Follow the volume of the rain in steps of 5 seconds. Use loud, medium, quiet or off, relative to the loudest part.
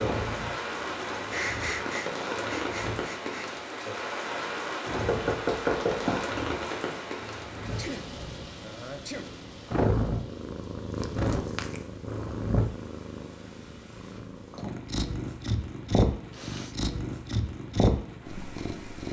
loud, loud, quiet, quiet.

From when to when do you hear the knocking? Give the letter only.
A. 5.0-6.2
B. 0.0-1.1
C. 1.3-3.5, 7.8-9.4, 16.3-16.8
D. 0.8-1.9
A.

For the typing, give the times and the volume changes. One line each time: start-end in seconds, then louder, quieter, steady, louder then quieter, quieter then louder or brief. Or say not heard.
not heard.